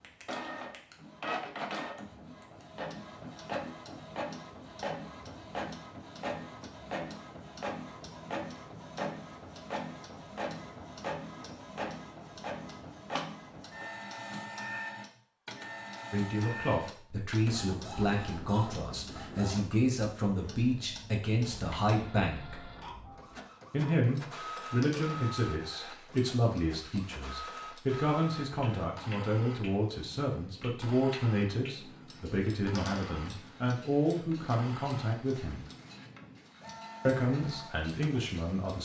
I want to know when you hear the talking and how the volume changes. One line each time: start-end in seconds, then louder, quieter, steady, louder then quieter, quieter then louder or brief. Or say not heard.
16.1-22.6 steady
23.7-35.6 steady
37.0-38.8 brief.